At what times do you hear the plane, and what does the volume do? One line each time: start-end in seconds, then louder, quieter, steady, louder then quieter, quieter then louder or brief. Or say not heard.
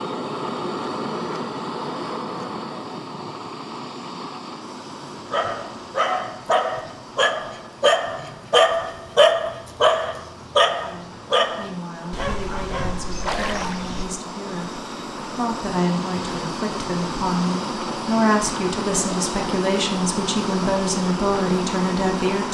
0.0-22.4 quieter then louder.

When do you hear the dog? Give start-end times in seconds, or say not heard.
5.0-14.1.